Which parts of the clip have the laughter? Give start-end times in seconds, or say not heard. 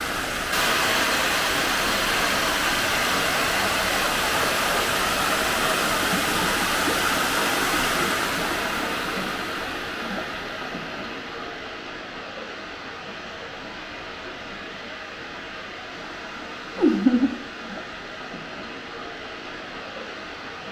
16.8-17.4.